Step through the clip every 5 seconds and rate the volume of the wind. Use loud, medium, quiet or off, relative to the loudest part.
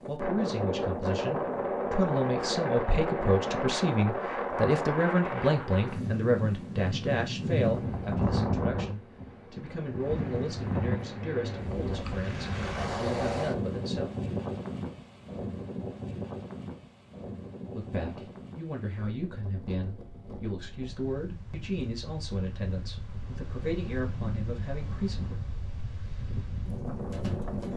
loud, loud, loud, medium, quiet, medium.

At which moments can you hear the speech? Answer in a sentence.
The speech can be heard from 0.1 to 14.1 s and from 17.7 to 25.4 s.